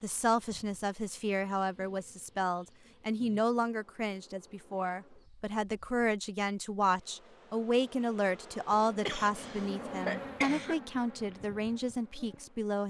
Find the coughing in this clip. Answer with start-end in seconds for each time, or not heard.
9.1-10.8.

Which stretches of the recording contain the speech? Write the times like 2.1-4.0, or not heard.
0.0-12.8.